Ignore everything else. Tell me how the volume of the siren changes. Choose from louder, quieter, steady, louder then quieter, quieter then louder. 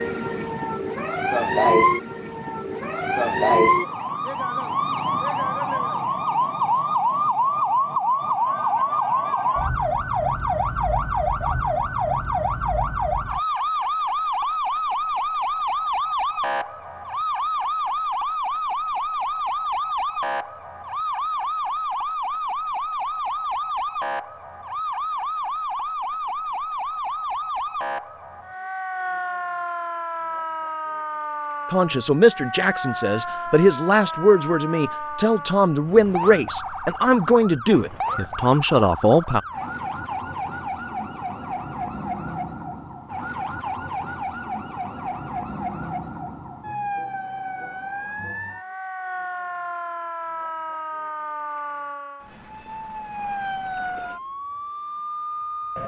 quieter.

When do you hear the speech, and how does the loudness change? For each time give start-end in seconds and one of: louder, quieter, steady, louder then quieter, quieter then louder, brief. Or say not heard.
31.7-39.4 steady.